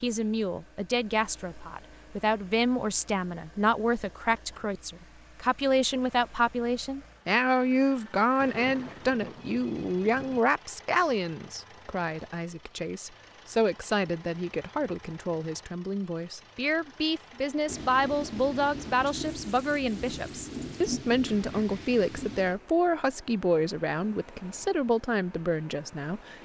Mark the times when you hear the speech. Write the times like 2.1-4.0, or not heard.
0.0-26.4.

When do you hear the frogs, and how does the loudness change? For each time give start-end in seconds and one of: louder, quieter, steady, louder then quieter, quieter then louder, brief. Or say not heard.
not heard.